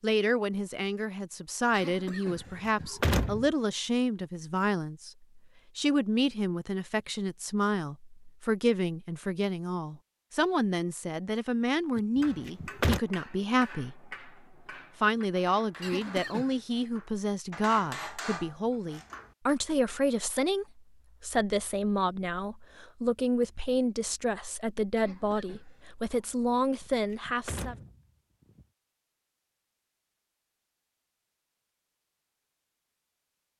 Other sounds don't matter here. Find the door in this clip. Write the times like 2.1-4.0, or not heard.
2.4-3.5, 12.2-13.0, 26.8-28.6.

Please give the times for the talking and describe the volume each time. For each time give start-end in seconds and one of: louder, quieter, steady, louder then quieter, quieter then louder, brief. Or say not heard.
0.0-14.1 steady
15.0-27.8 steady.